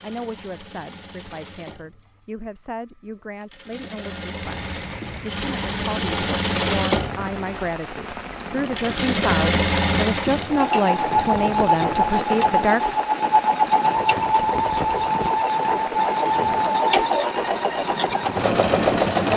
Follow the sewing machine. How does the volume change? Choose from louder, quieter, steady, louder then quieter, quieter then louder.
louder.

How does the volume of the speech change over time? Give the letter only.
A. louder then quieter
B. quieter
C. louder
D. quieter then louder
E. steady
C.